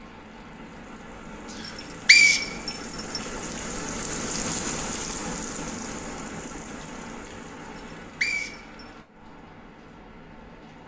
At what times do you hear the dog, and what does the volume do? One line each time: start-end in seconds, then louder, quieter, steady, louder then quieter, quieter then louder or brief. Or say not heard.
not heard.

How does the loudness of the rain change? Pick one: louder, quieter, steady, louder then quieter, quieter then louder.
louder then quieter.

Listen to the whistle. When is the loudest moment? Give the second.
2 s.